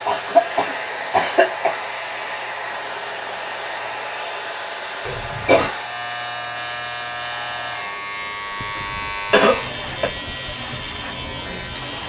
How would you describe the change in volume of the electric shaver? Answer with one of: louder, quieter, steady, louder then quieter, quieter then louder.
louder.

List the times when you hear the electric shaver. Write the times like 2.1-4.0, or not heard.
0.0-12.0.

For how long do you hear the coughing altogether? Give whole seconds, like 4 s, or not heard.
3 s.